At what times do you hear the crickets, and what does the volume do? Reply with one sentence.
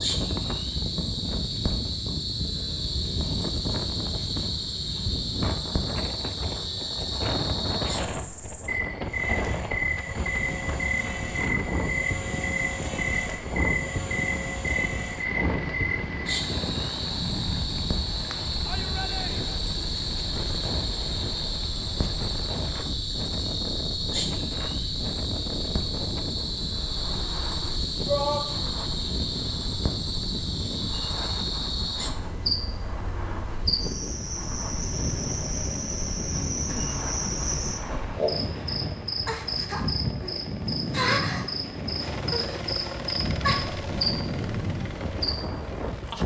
The crickets can be heard from 0.0 to 46.2 s, at a steady volume.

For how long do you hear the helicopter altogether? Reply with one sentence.
You can hear the helicopter for 25 seconds altogether.